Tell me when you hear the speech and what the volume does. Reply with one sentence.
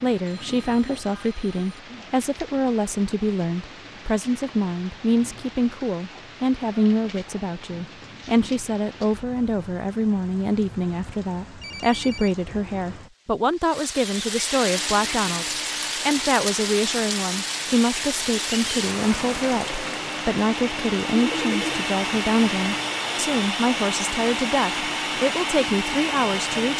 The speech can be heard from 0.0 to 26.7 s, at a steady volume.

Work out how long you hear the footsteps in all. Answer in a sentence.
You can't hear the footsteps here.